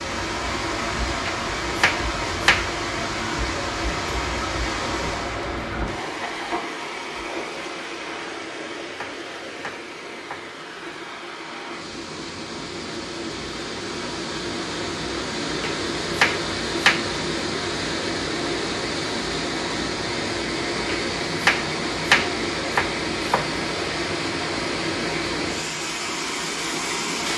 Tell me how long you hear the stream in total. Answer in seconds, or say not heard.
27 s.